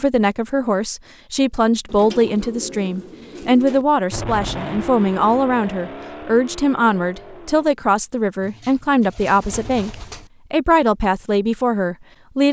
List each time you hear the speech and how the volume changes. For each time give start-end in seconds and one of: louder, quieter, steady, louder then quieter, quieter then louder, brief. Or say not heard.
0.0-12.4 steady.